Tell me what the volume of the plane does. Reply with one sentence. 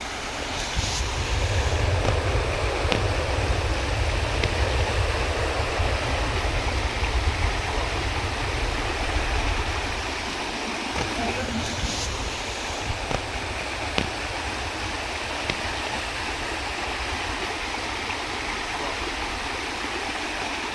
The volume of the plane goes down.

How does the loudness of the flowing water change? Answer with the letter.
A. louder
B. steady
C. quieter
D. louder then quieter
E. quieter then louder
B.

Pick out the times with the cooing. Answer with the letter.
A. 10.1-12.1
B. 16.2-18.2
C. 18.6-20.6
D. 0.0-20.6
A.